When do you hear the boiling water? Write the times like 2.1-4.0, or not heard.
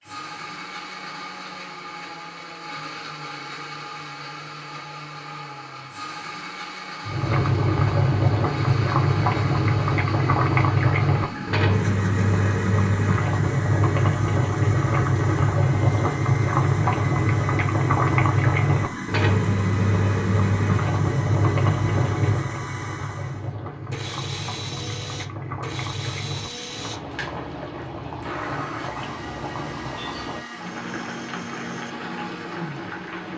7.0-33.3.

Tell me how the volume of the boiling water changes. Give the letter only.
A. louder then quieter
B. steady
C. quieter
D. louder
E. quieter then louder
C.